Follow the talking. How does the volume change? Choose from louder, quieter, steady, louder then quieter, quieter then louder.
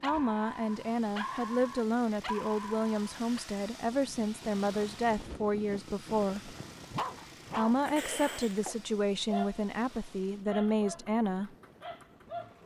steady.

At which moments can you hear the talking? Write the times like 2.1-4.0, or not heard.
0.0-6.5, 7.5-11.6.